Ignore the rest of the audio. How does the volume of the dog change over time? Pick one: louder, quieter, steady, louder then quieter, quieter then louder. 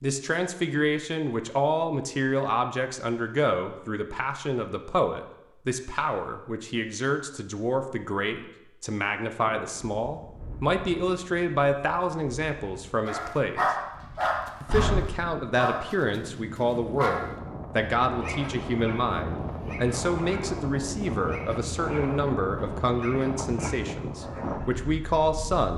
quieter.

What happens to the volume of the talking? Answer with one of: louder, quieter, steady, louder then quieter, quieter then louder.
steady.